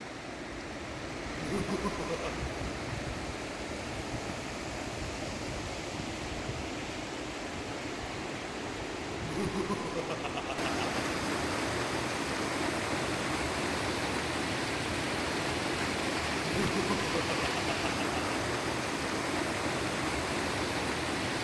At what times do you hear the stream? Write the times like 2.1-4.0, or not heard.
0.0-21.3.